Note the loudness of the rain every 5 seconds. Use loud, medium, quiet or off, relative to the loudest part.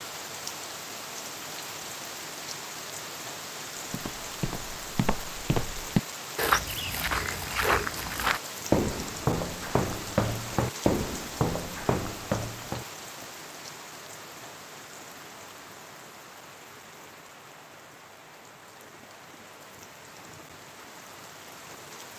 loud, loud, loud, medium, medium.